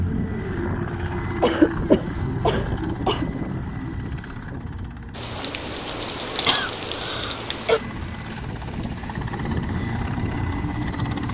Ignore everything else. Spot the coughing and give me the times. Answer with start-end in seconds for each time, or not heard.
1.4-3.2, 6.5-7.8.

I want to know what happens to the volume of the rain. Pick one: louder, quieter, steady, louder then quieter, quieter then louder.
quieter.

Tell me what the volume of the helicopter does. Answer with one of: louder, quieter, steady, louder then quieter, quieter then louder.
quieter then louder.